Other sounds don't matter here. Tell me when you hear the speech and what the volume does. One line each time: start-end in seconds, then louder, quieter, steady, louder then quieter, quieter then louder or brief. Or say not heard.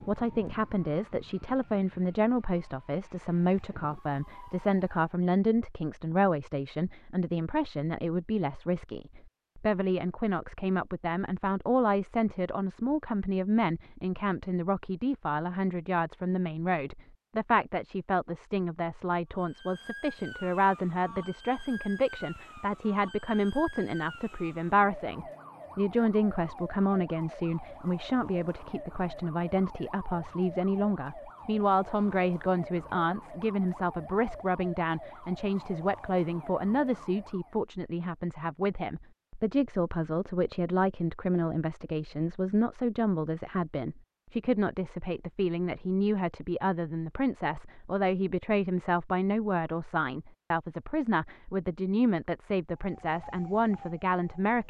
0.0-54.6 steady.